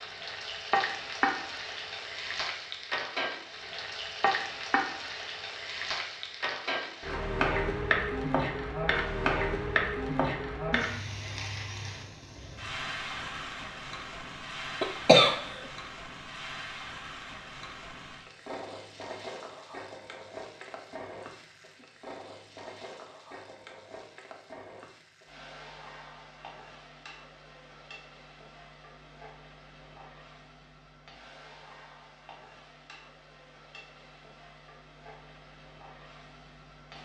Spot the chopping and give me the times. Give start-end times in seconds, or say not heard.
not heard.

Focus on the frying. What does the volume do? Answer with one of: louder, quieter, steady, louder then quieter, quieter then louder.
quieter.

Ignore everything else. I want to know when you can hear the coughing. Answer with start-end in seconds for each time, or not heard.
14.8-15.3.